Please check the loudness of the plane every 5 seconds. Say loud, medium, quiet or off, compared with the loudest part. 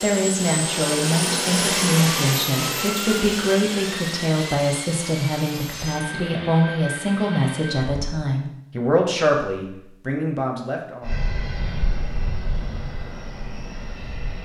loud, medium, medium.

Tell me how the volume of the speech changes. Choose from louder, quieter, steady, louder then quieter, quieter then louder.
steady.